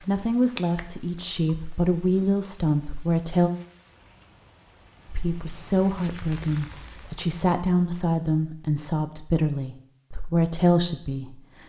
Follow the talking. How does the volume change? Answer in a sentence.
The volume of the talking stays about the same.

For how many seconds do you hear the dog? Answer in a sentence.
You can't hear the dog here.